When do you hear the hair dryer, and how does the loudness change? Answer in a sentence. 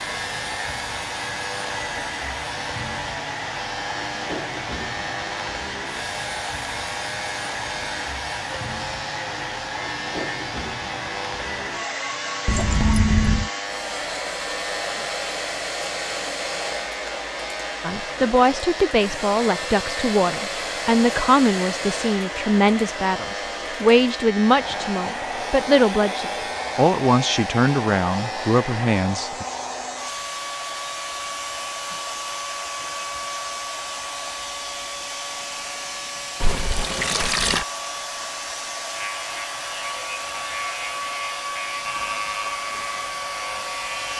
The hair dryer can be heard from 0.0 to 44.1 s, at a steady volume.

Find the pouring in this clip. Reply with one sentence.
The pouring can be heard from 12.4 to 13.5 s and from 36.4 to 37.6 s.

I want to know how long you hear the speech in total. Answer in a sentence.
You can hear the speech for 12 seconds altogether.